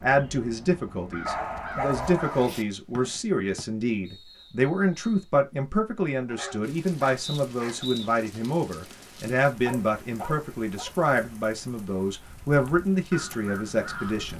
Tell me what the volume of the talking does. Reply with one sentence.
The loudness of the talking stays about the same.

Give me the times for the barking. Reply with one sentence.
You can hear the barking from 1.2 to 3.2 s, from 6.2 to 7.8 s and from 9.7 to 10.9 s.